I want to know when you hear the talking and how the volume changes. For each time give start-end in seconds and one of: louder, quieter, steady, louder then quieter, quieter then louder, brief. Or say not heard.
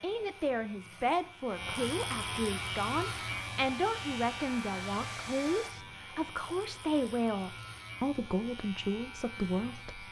0.0-10.0 steady.